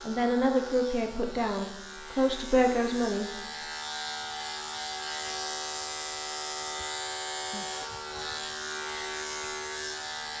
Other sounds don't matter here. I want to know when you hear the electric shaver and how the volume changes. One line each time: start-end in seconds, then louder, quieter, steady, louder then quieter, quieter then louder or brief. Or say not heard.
0.0-10.3 louder.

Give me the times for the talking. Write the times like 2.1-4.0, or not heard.
0.1-3.3.